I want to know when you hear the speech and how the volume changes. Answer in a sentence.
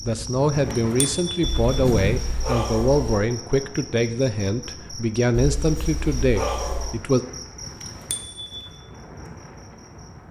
You can hear the speech from 0.0 to 7.2 s, at a steady volume.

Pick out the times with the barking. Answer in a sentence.
You can hear the barking from 1.4 to 3.2 s and from 5.3 to 7.0 s.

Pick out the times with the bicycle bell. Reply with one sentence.
You can hear the bicycle bell from 0.6 to 2.1 s and from 7.7 to 8.8 s.